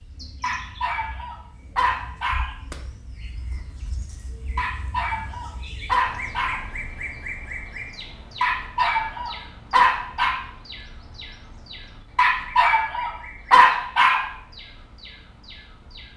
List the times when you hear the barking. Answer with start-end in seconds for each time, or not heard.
0.4-2.5, 4.5-6.6, 8.4-10.3, 12.2-14.2.